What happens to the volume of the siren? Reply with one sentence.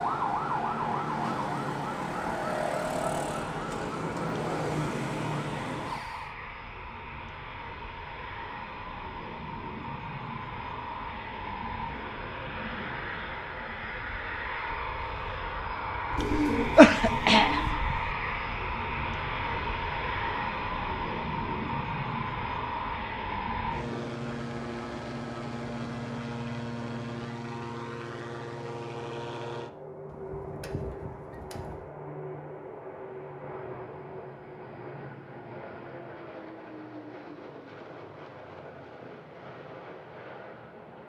The volume of the siren stays about the same.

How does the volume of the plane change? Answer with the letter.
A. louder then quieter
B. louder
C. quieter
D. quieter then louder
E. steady
A.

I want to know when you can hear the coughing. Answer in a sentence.
You can hear the coughing from 16.1 to 18.1 s.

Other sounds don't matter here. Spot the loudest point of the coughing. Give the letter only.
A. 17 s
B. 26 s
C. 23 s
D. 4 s
A.